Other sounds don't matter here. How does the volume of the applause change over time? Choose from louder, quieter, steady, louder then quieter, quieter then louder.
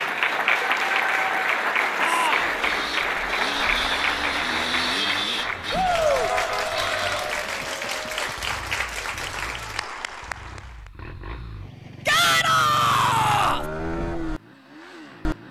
quieter.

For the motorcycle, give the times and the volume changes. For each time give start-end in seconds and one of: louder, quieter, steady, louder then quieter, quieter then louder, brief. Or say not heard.
2.4-15.4 quieter then louder.